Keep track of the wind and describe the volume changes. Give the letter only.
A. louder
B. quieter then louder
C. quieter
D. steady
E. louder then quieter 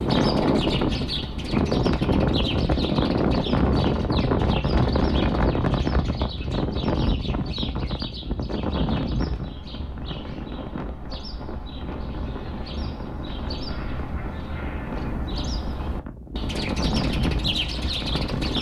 B.